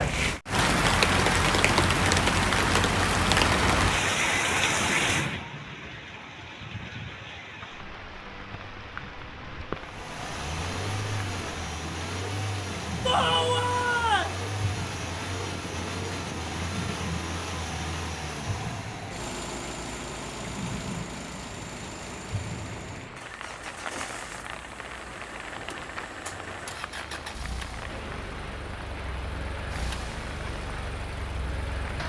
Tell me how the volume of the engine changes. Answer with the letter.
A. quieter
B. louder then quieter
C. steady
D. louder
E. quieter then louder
A.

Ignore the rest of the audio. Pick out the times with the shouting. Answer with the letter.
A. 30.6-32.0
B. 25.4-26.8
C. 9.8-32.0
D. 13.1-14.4
D.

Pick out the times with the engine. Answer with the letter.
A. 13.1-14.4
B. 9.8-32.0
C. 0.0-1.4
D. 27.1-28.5
B.